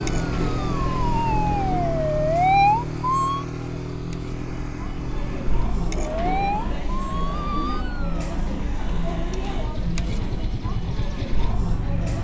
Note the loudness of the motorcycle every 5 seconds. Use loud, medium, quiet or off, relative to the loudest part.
loud, medium, medium.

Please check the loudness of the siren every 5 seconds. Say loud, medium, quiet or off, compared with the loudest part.
loud, medium, off.